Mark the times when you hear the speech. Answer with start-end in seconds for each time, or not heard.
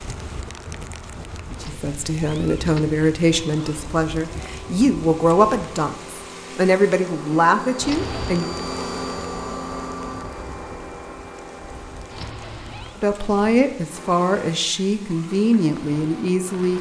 1.6-8.5, 12.9-16.7.